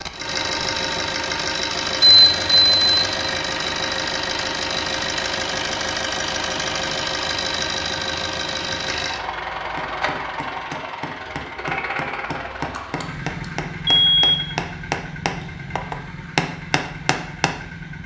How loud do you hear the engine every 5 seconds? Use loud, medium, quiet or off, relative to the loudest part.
loud, loud, medium, medium.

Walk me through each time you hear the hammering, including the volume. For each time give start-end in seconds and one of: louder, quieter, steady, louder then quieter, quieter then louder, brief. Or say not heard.
9.8-17.6 louder.